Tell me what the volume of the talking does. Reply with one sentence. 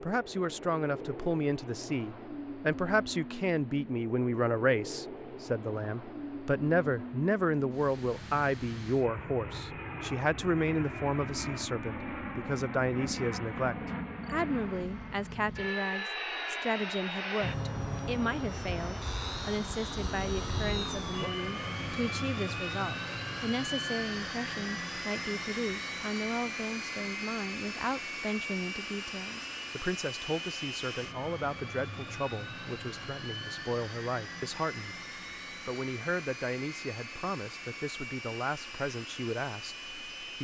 The volume of the talking goes down.